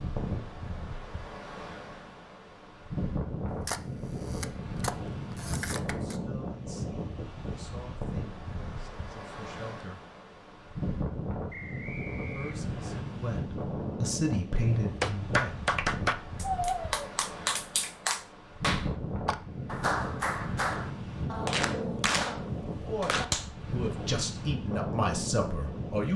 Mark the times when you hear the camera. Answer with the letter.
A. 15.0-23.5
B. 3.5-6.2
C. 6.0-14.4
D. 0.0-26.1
B.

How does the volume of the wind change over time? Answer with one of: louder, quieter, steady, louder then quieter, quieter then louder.
steady.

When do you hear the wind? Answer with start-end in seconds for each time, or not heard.
0.0-26.1.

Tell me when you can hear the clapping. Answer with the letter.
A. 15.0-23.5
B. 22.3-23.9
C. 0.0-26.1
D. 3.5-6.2
A.